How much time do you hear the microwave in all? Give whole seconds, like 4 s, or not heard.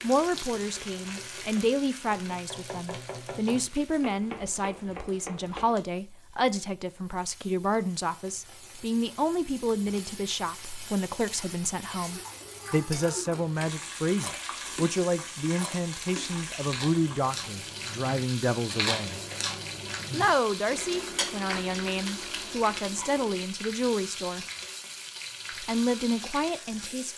not heard.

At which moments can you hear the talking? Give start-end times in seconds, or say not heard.
0.0-19.2, 20.1-24.4, 25.6-27.1.